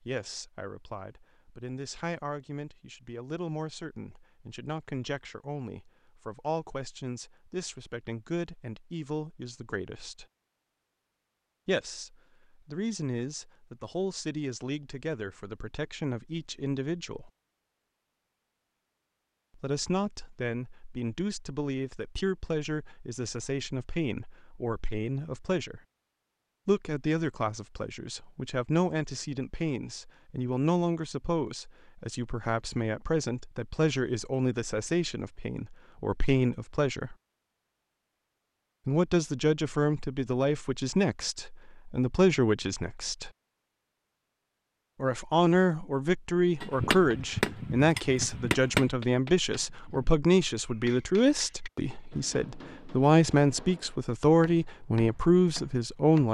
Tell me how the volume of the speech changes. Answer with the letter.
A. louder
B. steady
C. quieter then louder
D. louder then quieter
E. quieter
A.